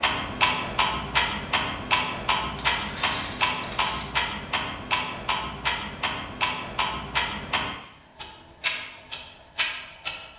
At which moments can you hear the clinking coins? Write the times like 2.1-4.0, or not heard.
2.5-4.2.